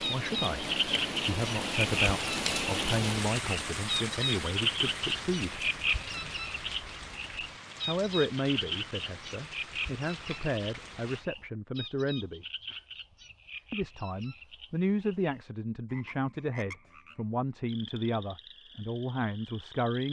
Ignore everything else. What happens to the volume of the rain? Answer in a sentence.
The volume of the rain goes down.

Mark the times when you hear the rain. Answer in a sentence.
You can hear the rain from 0.0 to 11.2 s.